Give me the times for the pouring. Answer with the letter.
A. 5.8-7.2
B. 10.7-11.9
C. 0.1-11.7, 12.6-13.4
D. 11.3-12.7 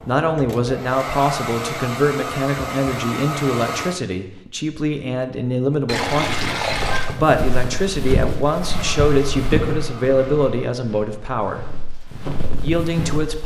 A.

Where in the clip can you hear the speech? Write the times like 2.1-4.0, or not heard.
0.1-11.7, 12.6-13.4.